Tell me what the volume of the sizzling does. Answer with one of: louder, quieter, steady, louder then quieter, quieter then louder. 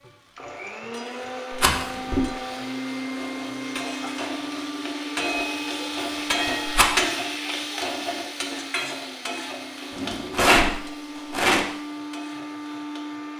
louder then quieter.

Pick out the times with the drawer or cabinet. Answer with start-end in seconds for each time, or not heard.
1.6-2.3, 5.9-7.1, 9.9-10.7.